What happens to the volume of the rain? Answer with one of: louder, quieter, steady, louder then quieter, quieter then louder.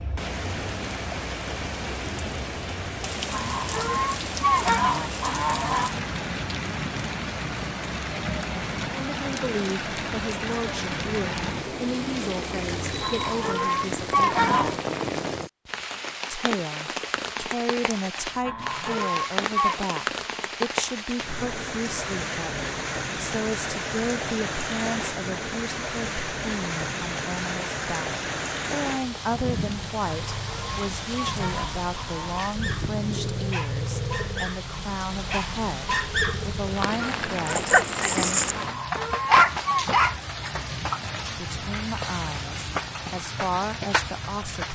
steady.